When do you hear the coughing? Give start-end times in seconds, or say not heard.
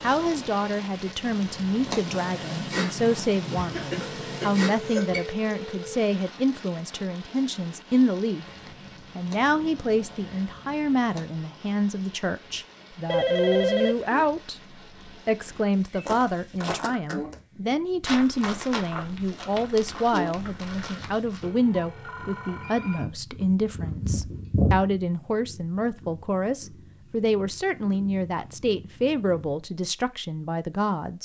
3.5-5.2.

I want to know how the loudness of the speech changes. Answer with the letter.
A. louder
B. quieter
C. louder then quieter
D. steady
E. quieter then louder
D.